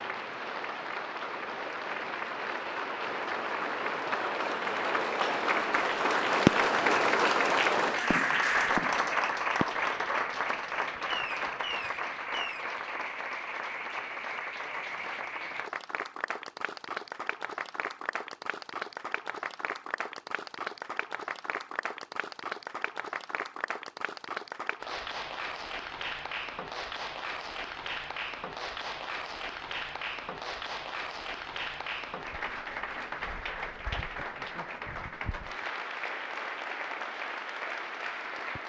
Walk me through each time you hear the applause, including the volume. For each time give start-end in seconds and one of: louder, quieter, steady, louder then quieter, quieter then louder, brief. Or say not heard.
0.0-38.6 quieter.